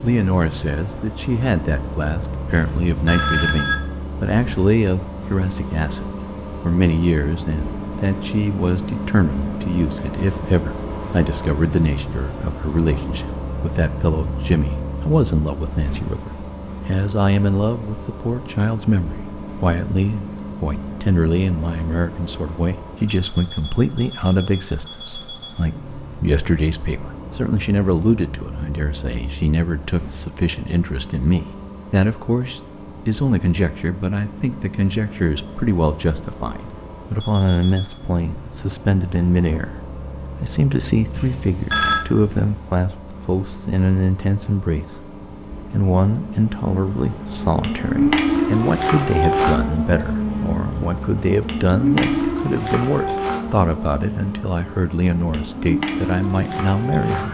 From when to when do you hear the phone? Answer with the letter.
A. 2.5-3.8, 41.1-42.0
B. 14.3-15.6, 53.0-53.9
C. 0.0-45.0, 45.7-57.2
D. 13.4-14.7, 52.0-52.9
A.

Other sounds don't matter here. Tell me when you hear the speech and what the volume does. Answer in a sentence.
The speech can be heard from 0.0 to 45.0 s, at a steady volume; and from 45.7 to 57.2 s, at a steady volume.